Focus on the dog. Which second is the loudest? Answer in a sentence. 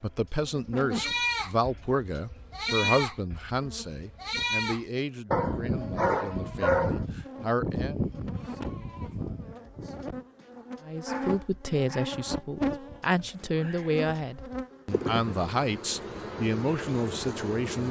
The loudest moment of the dog is at 7 seconds.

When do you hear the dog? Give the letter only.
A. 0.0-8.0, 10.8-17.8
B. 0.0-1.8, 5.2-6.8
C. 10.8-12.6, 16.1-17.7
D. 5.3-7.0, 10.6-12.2
D.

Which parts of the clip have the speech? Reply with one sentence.
You can hear the speech from 0.0 to 8.0 s and from 10.8 to 17.8 s.